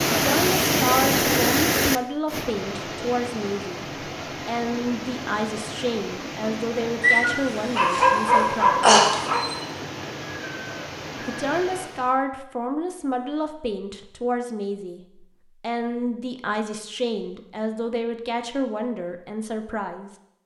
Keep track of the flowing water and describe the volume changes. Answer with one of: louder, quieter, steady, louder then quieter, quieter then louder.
quieter.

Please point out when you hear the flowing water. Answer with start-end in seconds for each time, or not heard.
0.0-12.2.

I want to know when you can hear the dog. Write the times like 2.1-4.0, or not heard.
7.0-9.6.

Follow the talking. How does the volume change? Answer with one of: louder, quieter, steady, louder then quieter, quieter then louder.
steady.